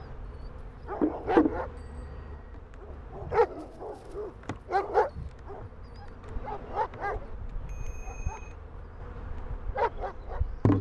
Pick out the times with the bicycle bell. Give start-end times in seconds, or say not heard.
1.8-2.5, 7.6-8.6.